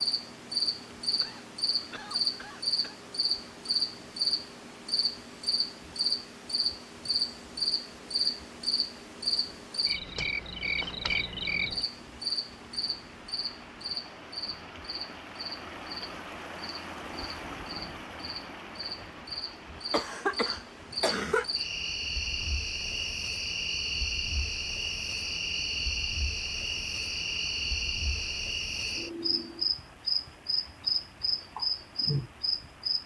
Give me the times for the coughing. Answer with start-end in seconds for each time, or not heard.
1.2-3.0, 19.9-21.4.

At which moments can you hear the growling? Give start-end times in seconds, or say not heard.
17.4-18.1.